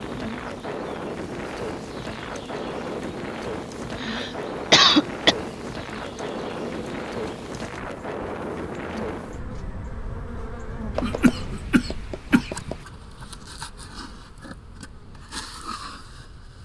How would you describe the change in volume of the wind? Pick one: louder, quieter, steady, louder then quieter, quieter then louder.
quieter.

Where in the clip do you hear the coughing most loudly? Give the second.
5 s.